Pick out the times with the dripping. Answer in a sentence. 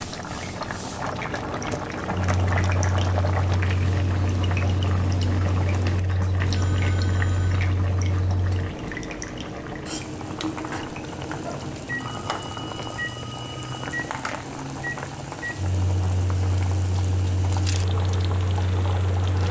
You can hear the dripping from 0.0 to 11.8 s.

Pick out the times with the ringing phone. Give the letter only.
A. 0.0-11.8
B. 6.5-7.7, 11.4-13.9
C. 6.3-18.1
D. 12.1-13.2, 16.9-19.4
B.